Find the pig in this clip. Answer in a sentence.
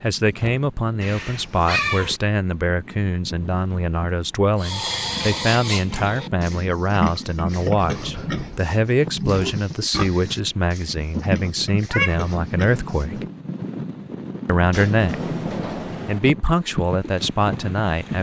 You can hear the pig from 4.6 to 13.1 s.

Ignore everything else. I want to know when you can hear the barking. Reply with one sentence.
You can't hear the barking here.